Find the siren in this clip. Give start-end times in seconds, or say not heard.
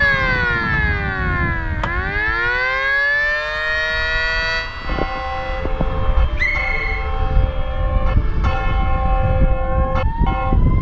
0.0-10.7.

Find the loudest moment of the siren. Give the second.
3 s.